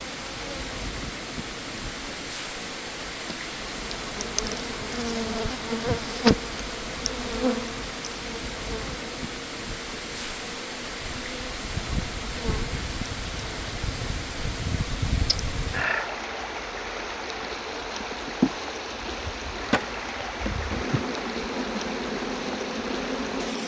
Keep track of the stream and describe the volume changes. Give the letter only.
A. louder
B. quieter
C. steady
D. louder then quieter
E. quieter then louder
C.